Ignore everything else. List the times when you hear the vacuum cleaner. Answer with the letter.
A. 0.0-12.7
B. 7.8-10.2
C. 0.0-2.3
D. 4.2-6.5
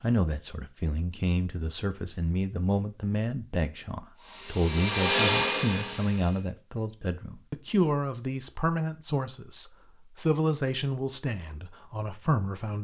D.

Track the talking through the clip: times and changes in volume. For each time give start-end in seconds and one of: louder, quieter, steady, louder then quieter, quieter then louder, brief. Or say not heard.
0.0-12.7 steady.